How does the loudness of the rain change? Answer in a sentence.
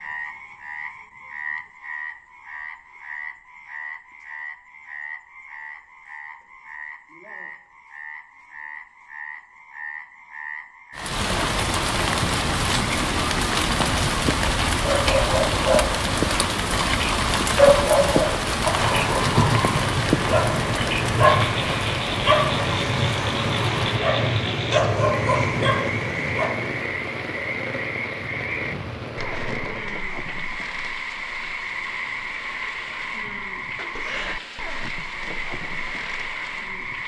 The volume of the rain goes down.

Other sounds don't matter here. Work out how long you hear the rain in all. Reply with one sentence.
The rain can be heard for 26 seconds in total.